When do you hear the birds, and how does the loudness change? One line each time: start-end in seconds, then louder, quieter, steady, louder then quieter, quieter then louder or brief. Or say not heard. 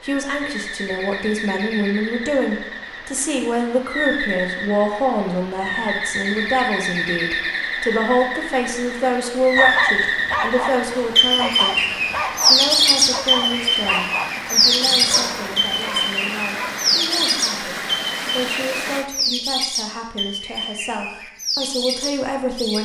0.0-22.8 louder then quieter.